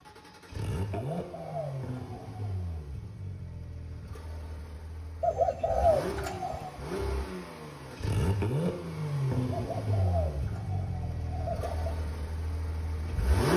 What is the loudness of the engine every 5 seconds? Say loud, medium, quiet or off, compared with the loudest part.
medium, loud, loud.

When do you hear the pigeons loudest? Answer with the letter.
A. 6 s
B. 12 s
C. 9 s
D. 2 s
A.